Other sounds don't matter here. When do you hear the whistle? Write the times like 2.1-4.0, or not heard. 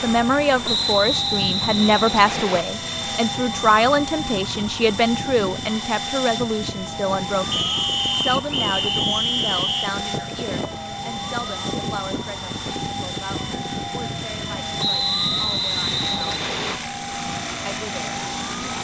0.7-2.6, 7.5-9.9, 14.8-16.8.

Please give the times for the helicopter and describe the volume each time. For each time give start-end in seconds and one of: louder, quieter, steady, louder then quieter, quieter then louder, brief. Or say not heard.
0.0-18.7 steady.